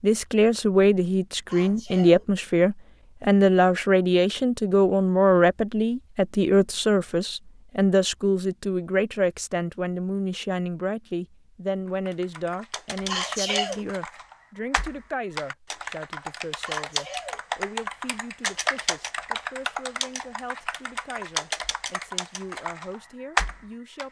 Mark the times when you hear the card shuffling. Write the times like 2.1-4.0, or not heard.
not heard.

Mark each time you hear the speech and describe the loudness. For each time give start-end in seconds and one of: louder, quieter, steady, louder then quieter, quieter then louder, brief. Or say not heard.
0.0-24.0 quieter.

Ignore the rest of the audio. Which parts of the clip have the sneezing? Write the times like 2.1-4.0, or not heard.
1.4-2.2, 13.1-13.8, 16.6-17.4.